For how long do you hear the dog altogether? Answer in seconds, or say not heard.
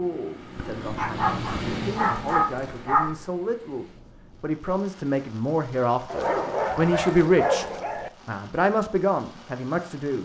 5 s.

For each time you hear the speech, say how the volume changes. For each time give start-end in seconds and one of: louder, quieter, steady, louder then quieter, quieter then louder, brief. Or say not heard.
0.0-7.7 louder
8.2-10.2 brief.